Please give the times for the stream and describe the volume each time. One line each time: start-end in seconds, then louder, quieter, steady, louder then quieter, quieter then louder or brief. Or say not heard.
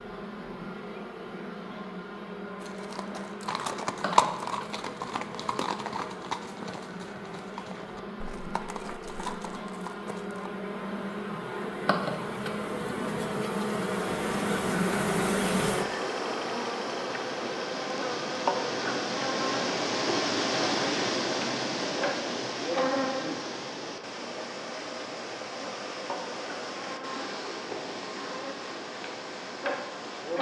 13.9-30.3 louder then quieter.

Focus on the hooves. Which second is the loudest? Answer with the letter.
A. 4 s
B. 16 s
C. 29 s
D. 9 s
A.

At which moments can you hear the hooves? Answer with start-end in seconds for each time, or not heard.
2.5-10.5.